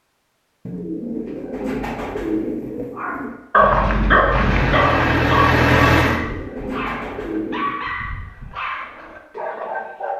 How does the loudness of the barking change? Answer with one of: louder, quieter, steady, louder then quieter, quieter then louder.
quieter.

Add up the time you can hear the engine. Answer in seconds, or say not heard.
2 s.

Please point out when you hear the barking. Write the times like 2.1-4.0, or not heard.
2.9-10.1.